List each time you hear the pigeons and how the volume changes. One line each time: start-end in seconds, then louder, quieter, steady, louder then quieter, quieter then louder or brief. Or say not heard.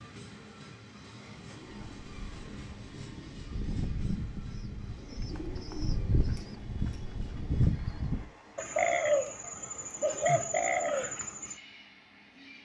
1.5-11.6 louder.